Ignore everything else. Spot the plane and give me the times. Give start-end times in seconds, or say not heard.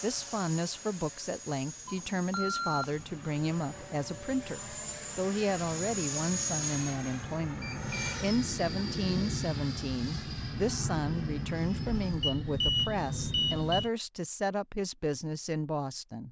0.0-13.9.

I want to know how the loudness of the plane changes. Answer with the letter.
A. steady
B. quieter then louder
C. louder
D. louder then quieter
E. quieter
C.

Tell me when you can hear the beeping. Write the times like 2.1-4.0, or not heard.
1.9-3.3, 7.6-8.2, 12.2-13.9.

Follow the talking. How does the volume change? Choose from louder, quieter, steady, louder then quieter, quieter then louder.
steady.